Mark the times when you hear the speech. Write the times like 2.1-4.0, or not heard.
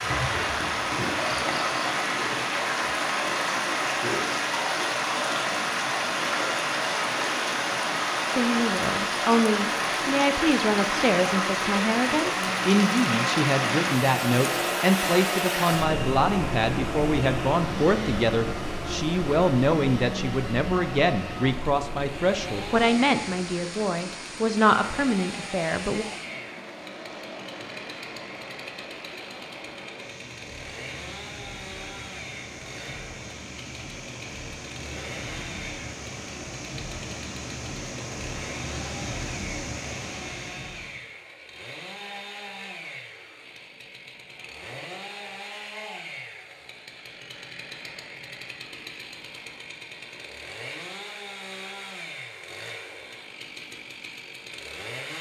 8.3-26.1.